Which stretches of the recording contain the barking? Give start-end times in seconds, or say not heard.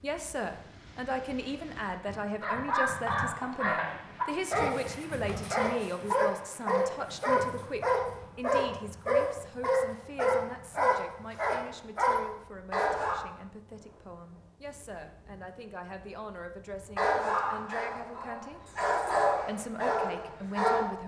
2.4-13.2, 16.9-20.9.